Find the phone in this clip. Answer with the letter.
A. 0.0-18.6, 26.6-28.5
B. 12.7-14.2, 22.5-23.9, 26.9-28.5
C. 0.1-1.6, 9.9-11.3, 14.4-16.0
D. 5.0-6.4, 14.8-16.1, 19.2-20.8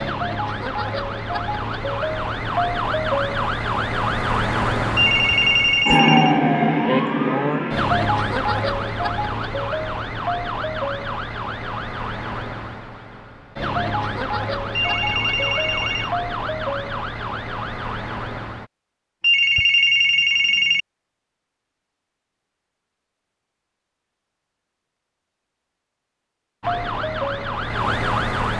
D.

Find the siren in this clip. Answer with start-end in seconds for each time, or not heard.
0.0-18.6, 26.6-28.5.